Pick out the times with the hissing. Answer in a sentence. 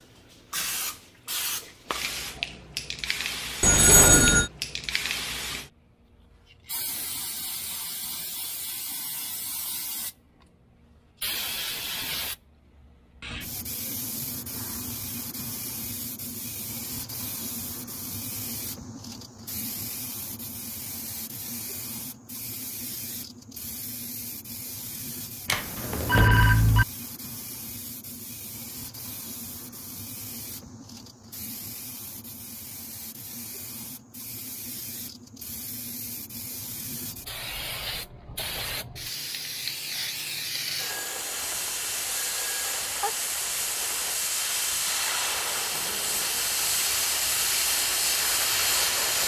The hissing can be heard from 0.0 to 49.2 s.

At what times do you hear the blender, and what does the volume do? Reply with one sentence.
You can't hear the blender here.